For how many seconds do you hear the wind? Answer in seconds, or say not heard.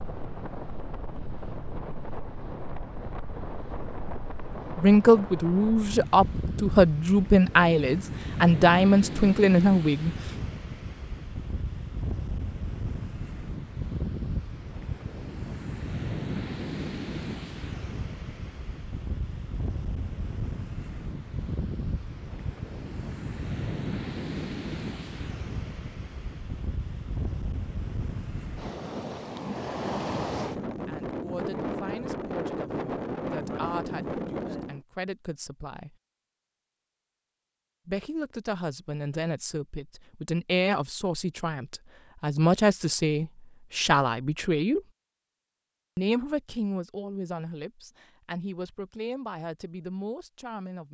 35 s.